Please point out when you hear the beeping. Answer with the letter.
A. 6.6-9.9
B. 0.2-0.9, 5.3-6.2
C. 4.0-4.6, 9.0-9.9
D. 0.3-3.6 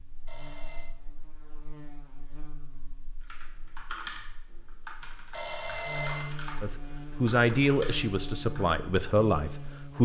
B.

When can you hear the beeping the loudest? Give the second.
6 s.